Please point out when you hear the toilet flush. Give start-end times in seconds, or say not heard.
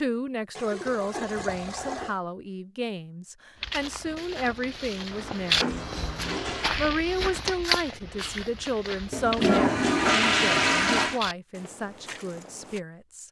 0.6-2.2, 5.1-6.8, 9.1-11.2.